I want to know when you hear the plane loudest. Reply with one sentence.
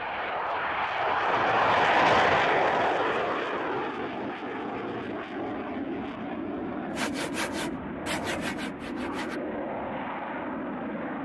The loudest moment of the plane is at 2 seconds.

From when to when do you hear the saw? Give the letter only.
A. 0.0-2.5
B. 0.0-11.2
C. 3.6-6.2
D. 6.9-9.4
D.